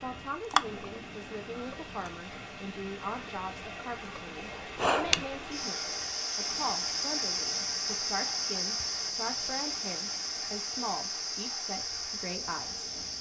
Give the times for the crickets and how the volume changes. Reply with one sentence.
You can hear the crickets from 0.0 to 13.1 s, at a steady volume.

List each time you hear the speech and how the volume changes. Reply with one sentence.
The speech can be heard from 0.0 to 12.8 s, at a steady volume.